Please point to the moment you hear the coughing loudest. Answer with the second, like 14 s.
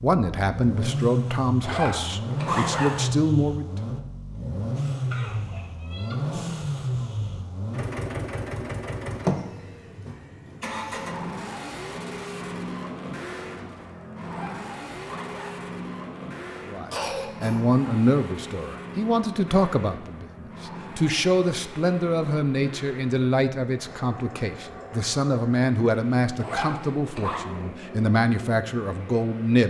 17 s.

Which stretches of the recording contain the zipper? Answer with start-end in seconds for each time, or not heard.
1.6-3.1, 14.2-15.7, 26.4-27.4.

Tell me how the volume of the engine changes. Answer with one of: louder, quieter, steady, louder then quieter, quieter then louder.
quieter.